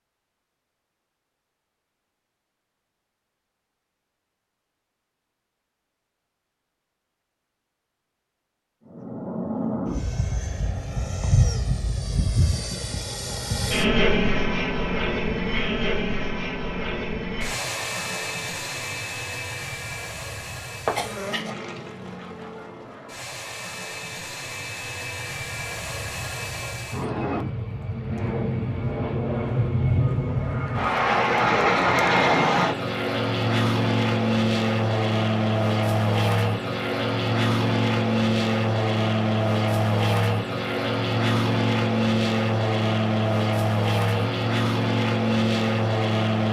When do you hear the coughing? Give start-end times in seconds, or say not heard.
20.9-21.5.